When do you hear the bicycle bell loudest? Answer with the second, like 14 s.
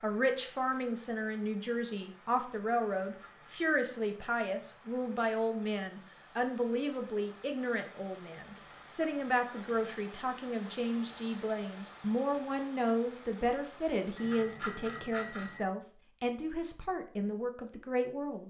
15 s.